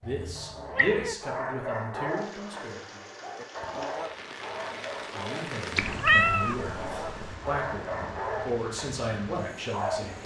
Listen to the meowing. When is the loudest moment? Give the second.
6 s.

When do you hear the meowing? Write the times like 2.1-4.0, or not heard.
0.1-1.1, 5.8-7.3.